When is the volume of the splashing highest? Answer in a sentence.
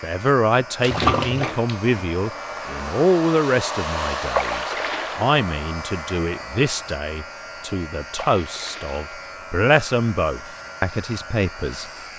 The volume of the splashing peaks at 1 second.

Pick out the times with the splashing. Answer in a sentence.
You can hear the splashing from 0.8 to 1.9 s, from 4.3 to 5.3 s and from 8.2 to 9.0 s.